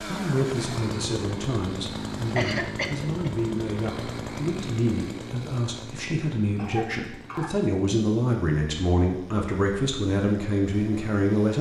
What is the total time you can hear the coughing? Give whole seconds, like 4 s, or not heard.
2 s.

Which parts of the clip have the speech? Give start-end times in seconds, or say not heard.
0.1-11.5.